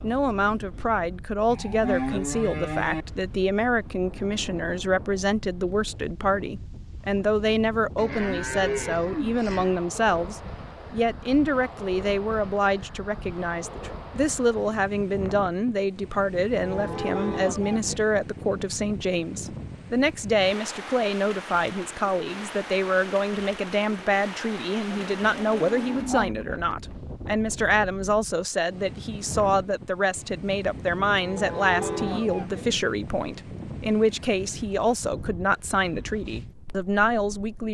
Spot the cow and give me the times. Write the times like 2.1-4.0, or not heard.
1.4-3.0, 8.0-9.8, 16.6-18.0, 24.9-26.6, 31.2-32.6.